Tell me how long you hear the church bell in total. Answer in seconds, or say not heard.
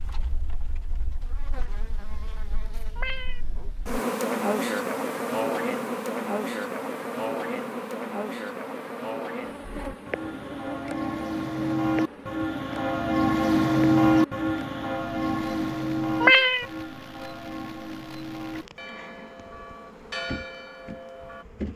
12 s.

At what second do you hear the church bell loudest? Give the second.
14 s.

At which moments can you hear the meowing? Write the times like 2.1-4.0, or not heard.
3.0-3.4, 16.2-16.6.